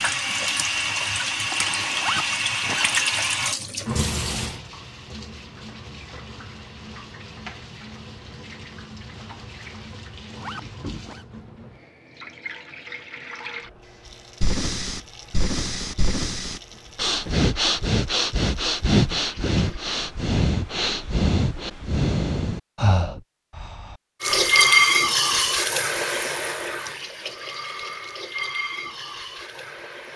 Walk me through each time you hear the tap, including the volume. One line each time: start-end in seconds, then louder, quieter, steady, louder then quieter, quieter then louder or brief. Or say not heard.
0.0-19.8 quieter
24.2-30.1 quieter.